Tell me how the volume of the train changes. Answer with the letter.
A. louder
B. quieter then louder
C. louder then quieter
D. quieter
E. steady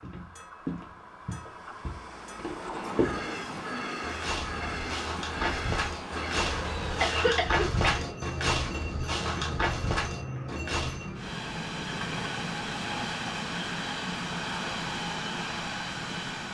A.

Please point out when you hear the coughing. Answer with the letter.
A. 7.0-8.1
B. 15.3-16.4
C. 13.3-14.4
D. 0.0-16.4
A.